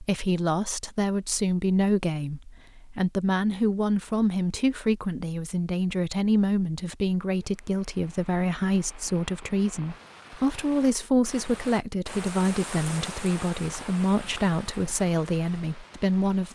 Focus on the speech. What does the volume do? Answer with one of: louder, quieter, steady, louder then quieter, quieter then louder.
steady.